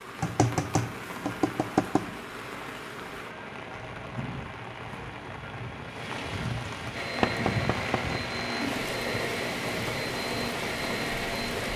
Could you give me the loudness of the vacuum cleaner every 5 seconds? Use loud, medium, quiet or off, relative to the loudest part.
off, loud, loud.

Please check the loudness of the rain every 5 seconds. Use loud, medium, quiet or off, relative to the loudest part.
medium, loud, loud.